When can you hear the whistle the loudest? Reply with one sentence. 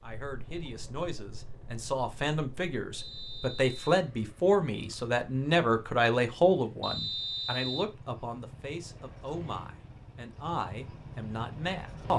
The volume of the whistle peaks at 7 seconds.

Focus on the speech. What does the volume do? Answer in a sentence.
The volume of the speech goes up, then down.